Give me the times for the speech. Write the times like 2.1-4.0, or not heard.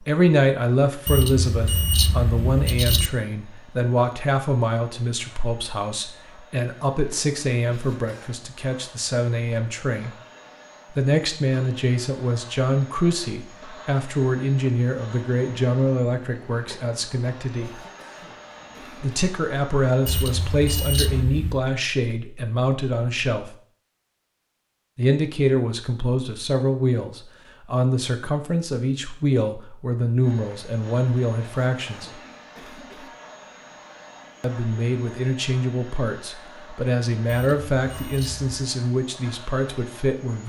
0.0-10.2, 10.9-17.7, 19.0-23.6, 24.9-32.1, 34.4-40.4.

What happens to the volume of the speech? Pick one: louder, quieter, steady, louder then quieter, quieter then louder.
steady.